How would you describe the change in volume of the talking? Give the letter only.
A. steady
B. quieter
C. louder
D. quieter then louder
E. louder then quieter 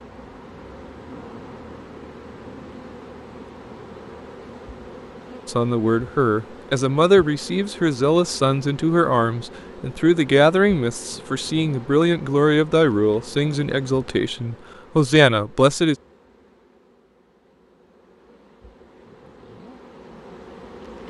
A.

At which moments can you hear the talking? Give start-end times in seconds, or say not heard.
5.5-15.9.